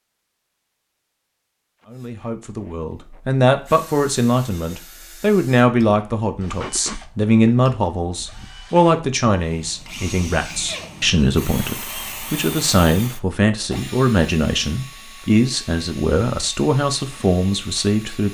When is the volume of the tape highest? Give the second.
7 s.